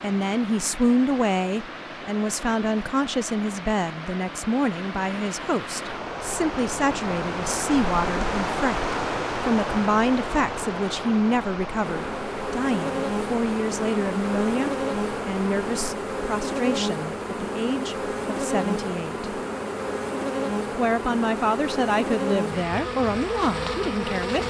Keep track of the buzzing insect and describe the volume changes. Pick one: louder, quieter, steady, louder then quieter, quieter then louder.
steady.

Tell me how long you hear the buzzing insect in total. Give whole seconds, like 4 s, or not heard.
13 s.